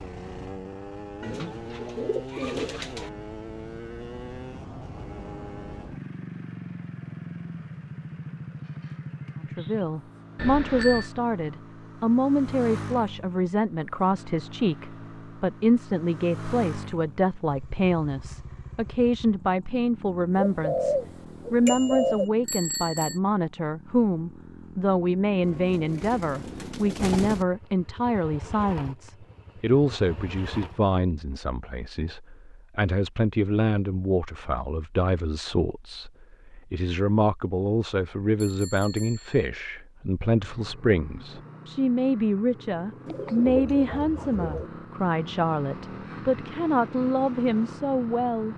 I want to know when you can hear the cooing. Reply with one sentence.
The cooing can be heard from 1.2 to 3.1 s, from 20.4 to 22.2 s, from 25.4 to 27.4 s and from 43.0 to 44.7 s.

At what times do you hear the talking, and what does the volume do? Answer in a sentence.
The talking can be heard from 9.6 to 48.5 s, at a steady volume.